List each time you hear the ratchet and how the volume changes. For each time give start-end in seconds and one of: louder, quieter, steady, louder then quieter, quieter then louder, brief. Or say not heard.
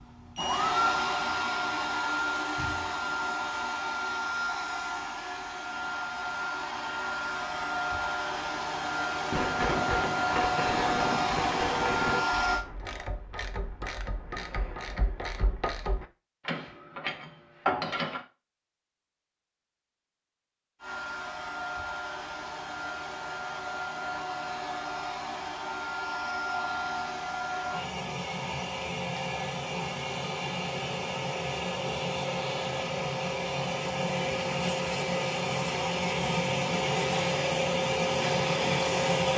9.3-18.2 quieter then louder.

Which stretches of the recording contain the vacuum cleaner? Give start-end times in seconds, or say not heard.
0.0-12.7, 20.8-39.3.